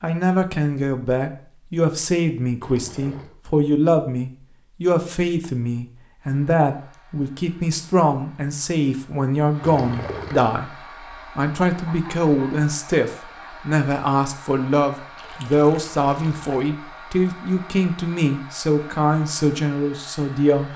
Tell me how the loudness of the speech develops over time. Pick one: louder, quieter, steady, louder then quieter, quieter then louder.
steady.